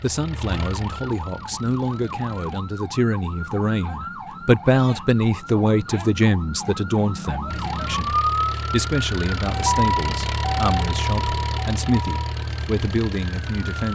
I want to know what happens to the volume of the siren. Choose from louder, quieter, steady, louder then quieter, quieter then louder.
louder then quieter.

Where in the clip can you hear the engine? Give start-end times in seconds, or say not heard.
0.0-2.6, 7.5-13.9.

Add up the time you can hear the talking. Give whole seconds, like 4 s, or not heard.
14 s.